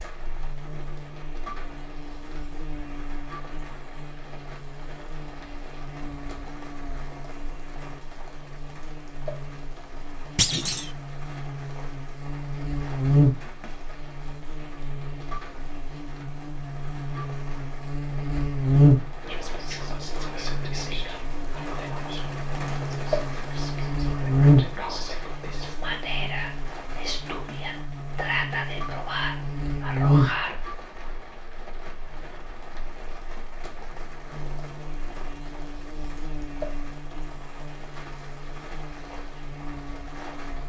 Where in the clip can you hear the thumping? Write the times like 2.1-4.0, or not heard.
10.3-10.9.